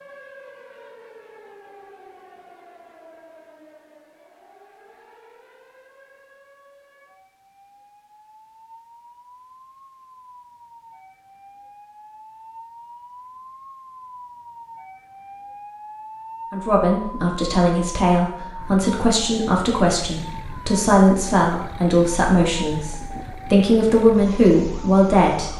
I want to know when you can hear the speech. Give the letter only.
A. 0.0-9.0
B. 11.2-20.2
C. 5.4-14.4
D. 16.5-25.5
D.